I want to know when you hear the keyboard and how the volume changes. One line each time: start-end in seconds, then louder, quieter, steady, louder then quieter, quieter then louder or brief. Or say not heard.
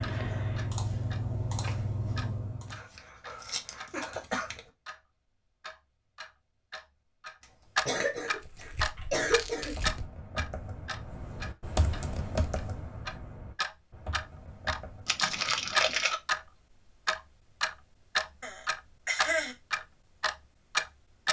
0.0-2.8 brief
8.4-15.2 louder then quieter.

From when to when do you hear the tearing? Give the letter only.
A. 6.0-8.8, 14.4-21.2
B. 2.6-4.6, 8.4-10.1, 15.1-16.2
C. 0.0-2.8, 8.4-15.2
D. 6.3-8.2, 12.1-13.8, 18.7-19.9
B.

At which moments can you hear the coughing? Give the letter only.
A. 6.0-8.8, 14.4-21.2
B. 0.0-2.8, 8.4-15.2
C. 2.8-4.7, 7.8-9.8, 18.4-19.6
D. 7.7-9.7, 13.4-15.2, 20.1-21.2
C.